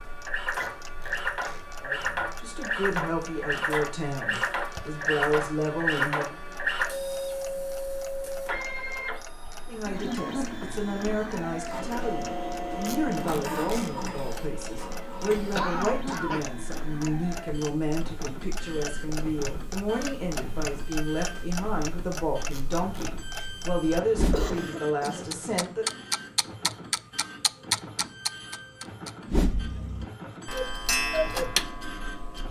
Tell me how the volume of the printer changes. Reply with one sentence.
The volume of the printer goes down.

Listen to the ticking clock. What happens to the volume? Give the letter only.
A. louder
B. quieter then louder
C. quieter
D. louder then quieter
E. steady
A.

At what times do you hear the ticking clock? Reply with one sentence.
You can hear the ticking clock from 0.0 to 32.4 s.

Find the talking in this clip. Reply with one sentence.
The talking can be heard from 1.8 to 6.3 s and from 9.7 to 25.9 s.